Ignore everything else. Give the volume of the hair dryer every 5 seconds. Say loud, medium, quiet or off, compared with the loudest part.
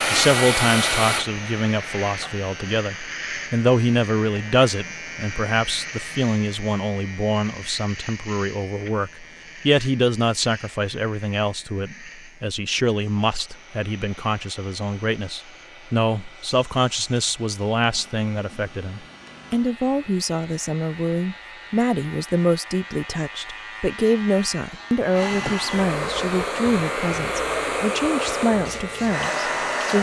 loud, off, quiet, quiet, quiet, loud.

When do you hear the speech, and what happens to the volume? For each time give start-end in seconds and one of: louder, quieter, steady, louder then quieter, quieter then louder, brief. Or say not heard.
0.1-29.9 steady.